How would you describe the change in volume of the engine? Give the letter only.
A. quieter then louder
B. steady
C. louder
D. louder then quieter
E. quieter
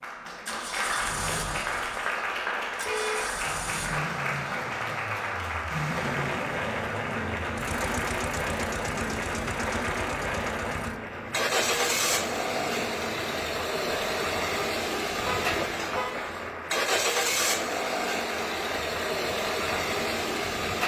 C.